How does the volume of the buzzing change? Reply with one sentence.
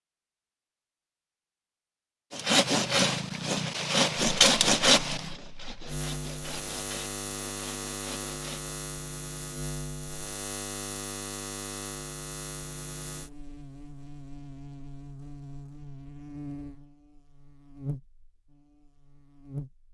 The loudness of the buzzing goes down.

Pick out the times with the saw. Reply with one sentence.
You can hear the saw from 2.3 to 8.8 s.